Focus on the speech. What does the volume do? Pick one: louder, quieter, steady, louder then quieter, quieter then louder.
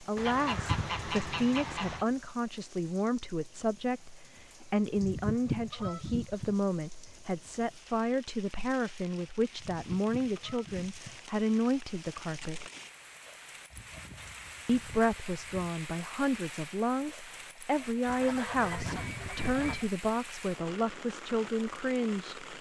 steady.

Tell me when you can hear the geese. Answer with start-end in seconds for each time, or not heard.
0.1-2.0, 5.0-6.5, 9.6-11.2, 13.7-15.8, 18.1-19.9.